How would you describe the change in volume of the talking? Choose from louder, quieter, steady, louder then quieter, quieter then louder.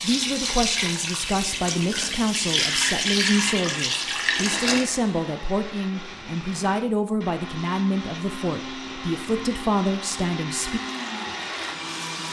steady.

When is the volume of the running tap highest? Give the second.
3 s.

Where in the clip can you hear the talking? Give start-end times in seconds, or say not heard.
0.0-10.8.